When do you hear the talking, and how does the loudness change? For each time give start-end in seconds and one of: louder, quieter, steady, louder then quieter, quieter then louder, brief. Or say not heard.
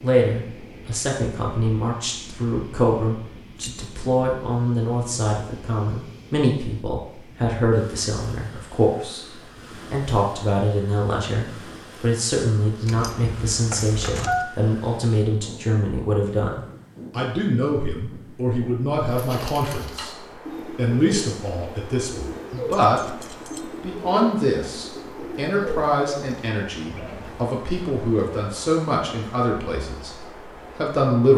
0.0-9.2 steady
9.9-23.2 steady
23.8-31.3 quieter.